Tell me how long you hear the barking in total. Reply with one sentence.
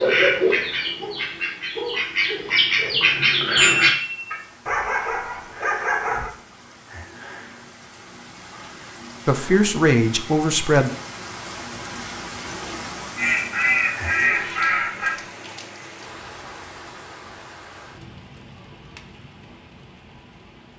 The barking can be heard for 2 seconds in total.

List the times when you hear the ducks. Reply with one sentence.
The ducks can be heard from 0.0 to 4.4 s and from 13.2 to 15.2 s.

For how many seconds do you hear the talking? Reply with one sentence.
The talking can be heard for 2 seconds in total.